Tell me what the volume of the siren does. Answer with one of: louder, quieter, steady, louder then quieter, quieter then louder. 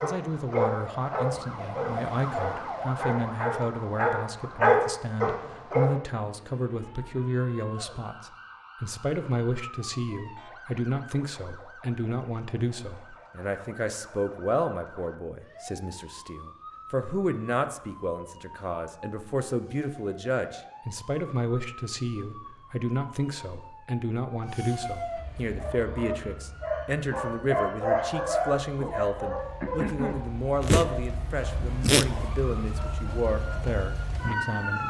quieter then louder.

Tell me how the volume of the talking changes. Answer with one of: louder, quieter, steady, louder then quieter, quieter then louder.
steady.